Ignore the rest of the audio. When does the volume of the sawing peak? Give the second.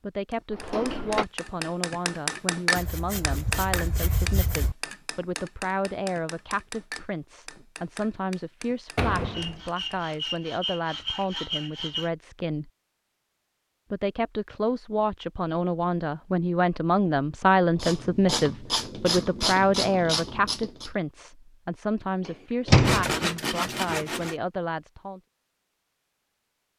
23 s.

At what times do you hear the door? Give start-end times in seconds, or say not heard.
0.5-1.2, 8.9-9.6, 22.2-23.2.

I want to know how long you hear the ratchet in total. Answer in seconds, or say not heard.
3 s.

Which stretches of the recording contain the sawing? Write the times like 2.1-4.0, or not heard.
2.8-4.8, 9.3-12.1, 22.8-24.4.